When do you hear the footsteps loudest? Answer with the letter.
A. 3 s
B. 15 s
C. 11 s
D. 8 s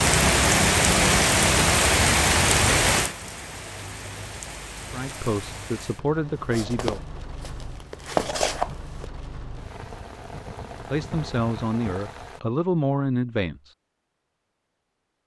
D.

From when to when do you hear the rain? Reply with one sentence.
The rain can be heard from 0.0 to 12.4 s.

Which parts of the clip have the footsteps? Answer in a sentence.
The footsteps can be heard from 6.3 to 9.1 s.